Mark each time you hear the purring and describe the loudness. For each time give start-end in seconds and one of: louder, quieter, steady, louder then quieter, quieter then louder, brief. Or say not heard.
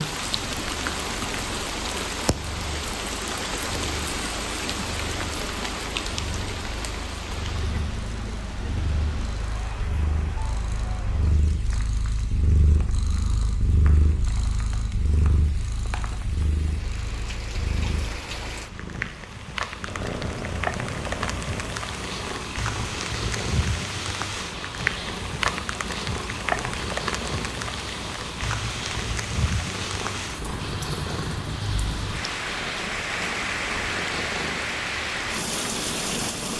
0.1-36.5 louder.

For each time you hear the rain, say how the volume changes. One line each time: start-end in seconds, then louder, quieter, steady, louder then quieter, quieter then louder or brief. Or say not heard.
0.0-36.5 quieter then louder.